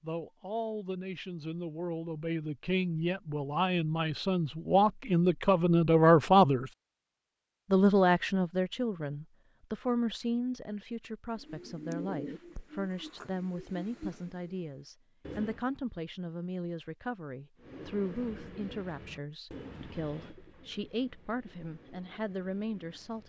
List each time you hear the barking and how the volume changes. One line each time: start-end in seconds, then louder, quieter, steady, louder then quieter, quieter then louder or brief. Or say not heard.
not heard.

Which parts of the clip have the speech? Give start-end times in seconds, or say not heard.
0.0-6.7, 7.7-23.2.